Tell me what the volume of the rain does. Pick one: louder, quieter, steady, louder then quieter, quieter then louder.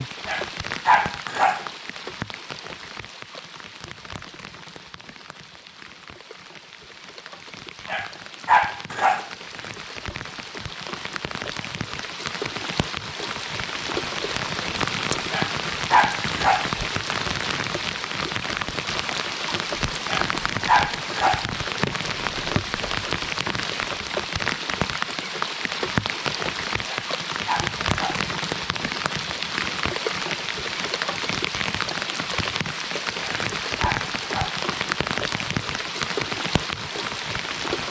louder.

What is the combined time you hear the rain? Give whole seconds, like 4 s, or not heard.
38 s.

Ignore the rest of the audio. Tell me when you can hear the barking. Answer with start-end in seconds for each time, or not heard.
0.2-1.6, 7.8-9.3, 15.3-16.7, 20.1-21.4, 26.9-28.2, 33.2-34.6.